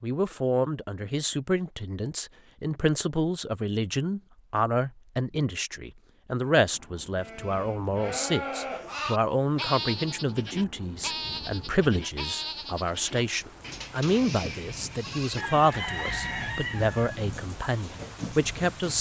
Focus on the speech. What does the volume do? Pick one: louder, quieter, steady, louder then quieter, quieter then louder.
steady.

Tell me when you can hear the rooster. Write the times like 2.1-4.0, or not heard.
15.3-17.4.